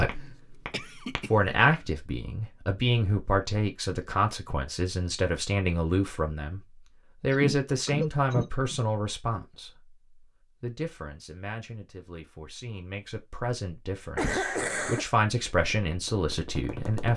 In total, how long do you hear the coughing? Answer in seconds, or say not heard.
4 s.